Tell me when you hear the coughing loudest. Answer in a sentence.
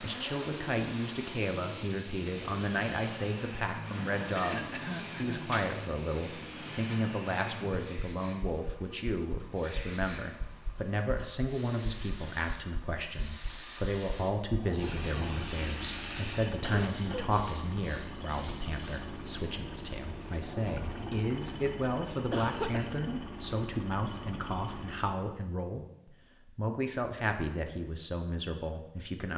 The loudest moment of the coughing is at 22 seconds.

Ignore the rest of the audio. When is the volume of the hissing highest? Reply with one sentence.
The volume of the hissing peaks at 17 seconds.